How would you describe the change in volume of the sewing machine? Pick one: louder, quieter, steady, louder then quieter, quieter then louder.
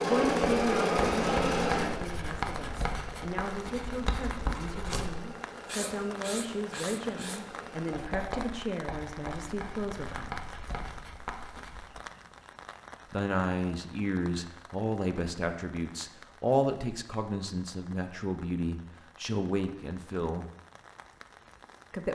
quieter.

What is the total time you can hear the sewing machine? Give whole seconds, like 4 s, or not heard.
8 s.